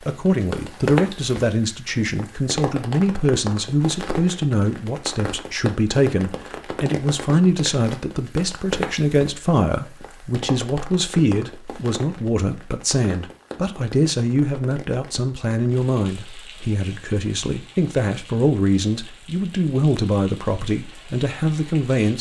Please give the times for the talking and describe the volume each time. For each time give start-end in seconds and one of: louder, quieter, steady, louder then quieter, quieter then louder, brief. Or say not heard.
0.1-22.1 steady.